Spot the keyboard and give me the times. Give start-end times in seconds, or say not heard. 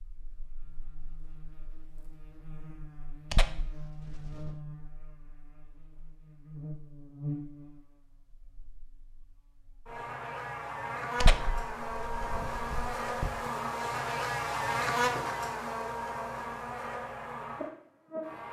not heard.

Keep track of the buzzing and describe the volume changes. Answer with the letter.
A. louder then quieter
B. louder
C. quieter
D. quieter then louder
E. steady
B.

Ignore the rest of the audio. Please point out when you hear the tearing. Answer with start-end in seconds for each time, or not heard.
3.3-4.5, 11.2-13.3.